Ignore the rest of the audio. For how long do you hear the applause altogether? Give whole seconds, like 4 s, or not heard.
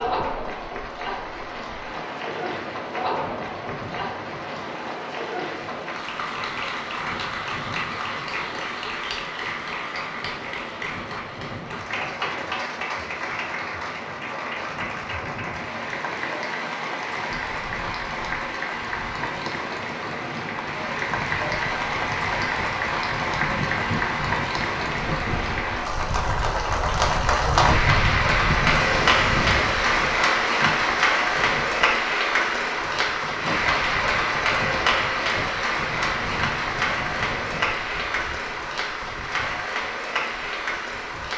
41 s.